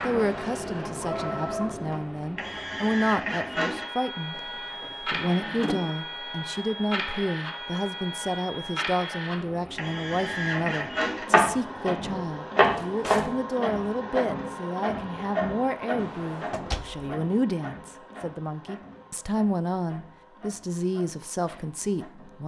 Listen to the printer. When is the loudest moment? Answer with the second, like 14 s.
13 s.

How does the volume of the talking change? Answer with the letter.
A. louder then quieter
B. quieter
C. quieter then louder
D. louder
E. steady
E.